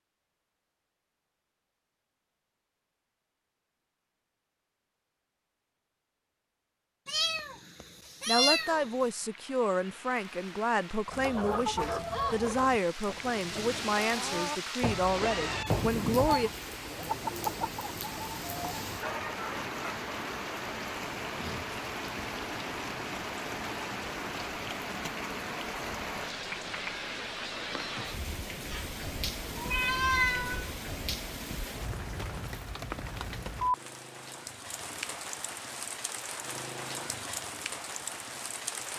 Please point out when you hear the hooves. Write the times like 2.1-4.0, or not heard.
not heard.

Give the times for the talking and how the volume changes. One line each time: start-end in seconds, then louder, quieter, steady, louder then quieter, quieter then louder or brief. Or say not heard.
8.2-16.5 steady.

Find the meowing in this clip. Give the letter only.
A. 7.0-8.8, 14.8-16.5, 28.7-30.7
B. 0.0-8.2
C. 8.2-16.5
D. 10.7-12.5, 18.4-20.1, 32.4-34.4
A.